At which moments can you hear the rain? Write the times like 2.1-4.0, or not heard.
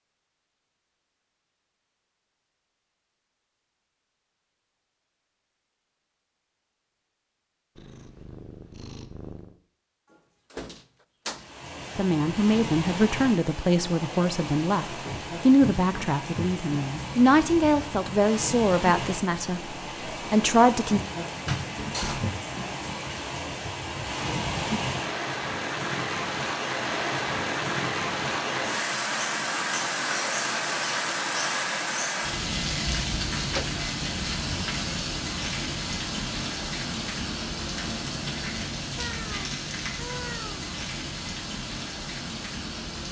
11.3-43.0.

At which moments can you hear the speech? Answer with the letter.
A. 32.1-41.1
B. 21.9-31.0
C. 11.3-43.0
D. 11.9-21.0
D.